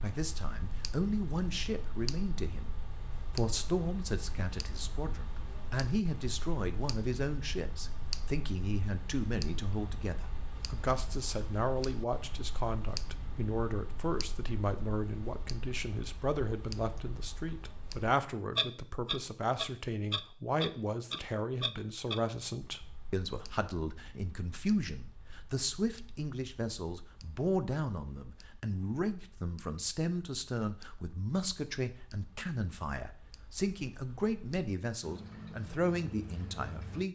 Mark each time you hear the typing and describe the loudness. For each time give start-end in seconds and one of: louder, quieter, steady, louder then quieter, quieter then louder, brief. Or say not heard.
not heard.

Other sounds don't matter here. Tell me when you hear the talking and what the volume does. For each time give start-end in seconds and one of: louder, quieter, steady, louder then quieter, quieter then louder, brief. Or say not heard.
0.0-37.1 steady.